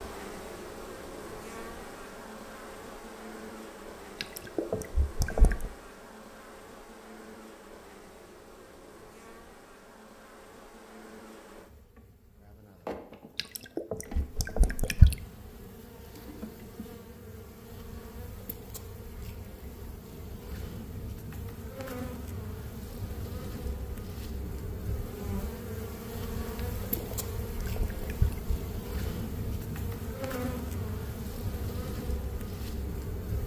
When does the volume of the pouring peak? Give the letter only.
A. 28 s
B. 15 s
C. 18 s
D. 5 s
B.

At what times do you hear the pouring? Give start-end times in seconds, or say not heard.
4.2-5.7, 13.3-15.2, 26.8-28.6.